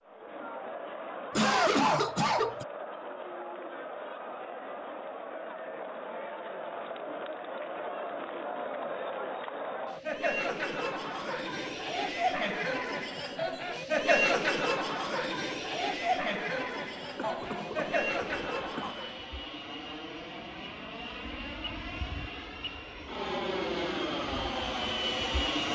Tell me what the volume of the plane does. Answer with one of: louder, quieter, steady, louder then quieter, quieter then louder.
louder.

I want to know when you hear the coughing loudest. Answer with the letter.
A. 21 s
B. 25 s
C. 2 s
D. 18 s
C.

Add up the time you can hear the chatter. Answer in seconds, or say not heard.
19 s.